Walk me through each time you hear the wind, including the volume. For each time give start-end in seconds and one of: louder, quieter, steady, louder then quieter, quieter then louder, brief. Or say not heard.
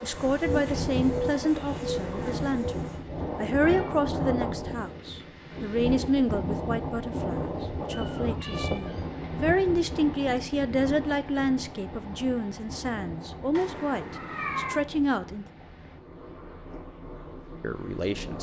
0.0-18.3 quieter.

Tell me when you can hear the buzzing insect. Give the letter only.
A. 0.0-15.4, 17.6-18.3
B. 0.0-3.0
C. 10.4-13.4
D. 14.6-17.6
B.